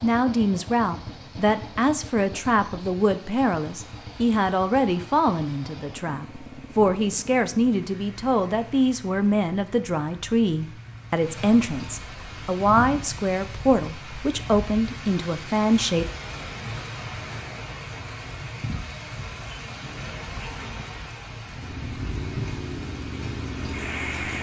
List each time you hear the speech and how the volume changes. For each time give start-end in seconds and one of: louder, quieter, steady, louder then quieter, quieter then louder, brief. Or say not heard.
0.0-16.1 steady.